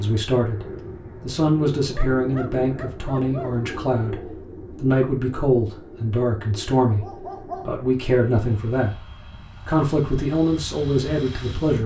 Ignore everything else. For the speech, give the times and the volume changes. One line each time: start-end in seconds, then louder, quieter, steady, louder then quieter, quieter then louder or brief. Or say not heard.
0.0-8.9 steady
9.7-11.8 brief.